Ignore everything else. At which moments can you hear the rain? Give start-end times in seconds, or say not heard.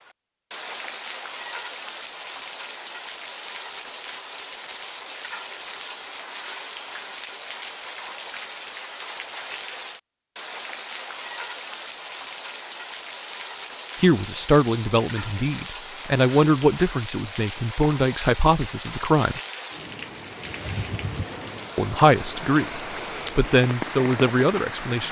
0.0-25.0.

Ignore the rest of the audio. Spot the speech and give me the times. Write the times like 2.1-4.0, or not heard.
14.0-19.4, 21.8-25.0.